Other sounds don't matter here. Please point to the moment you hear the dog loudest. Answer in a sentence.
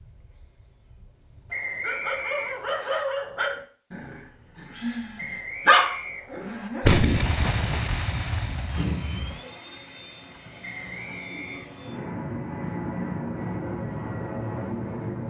The volume of the dog peaks at 6 seconds.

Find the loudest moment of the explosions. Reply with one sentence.
The volume of the explosions peaks at 7 seconds.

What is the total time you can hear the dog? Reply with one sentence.
The dog can be heard for 7 seconds in total.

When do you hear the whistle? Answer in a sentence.
You can hear the whistle from 1.5 to 3.0 s, from 5.2 to 6.7 s and from 10.6 to 11.7 s.